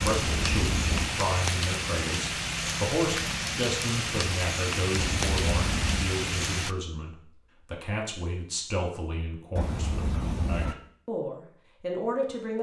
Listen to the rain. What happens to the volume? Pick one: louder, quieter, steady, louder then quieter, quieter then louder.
steady.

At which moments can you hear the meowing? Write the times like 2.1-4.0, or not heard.
0.0-1.1, 5.0-6.2, 9.6-10.8.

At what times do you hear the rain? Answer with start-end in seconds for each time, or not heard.
0.0-6.8.